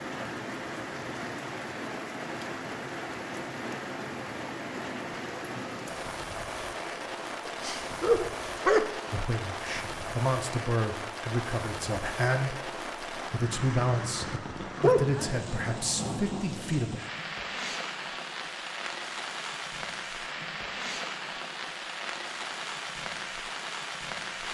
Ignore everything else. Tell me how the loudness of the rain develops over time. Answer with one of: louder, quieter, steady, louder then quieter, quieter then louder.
steady.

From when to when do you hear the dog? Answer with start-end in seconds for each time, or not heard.
7.5-9.2, 14.8-15.7.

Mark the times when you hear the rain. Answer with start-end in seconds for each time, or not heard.
0.0-24.4.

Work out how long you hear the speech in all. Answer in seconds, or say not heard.
8 s.